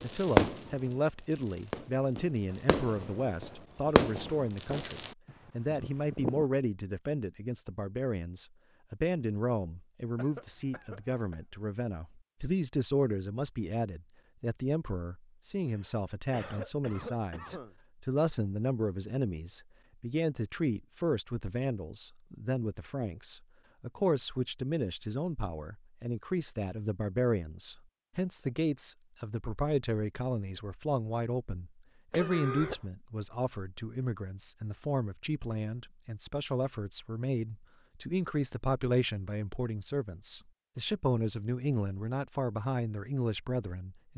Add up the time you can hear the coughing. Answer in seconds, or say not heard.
4 s.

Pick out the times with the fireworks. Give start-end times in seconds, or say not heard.
0.0-5.1, 5.8-6.5.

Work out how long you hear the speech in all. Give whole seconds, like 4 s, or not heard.
44 s.